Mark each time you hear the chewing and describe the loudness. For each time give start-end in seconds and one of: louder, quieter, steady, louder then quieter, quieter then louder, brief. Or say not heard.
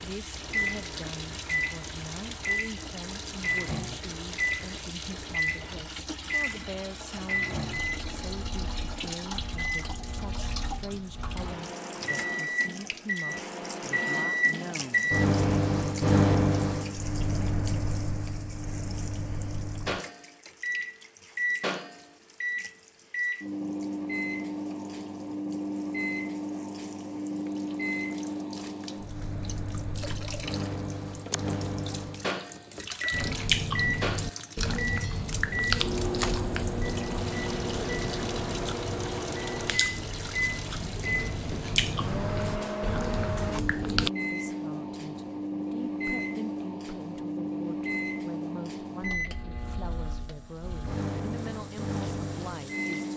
33.1-44.1 quieter then louder.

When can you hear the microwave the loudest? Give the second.
16 s.